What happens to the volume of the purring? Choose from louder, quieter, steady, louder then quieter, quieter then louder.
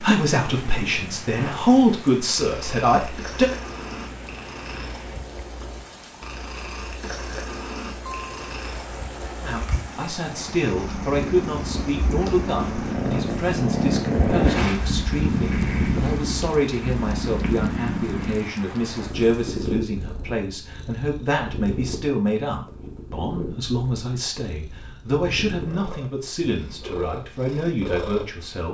louder then quieter.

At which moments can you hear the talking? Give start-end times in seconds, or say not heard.
0.0-3.5, 9.4-28.7.